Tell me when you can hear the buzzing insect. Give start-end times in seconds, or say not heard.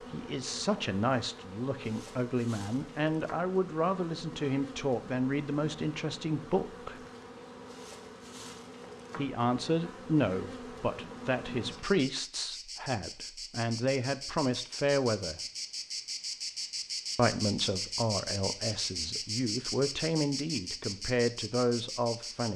0.0-22.5.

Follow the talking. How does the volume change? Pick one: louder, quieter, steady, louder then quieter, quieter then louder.
steady.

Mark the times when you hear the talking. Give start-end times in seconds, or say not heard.
0.1-7.0, 9.2-15.4, 17.1-22.5.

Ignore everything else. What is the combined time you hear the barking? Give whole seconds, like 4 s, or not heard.
not heard.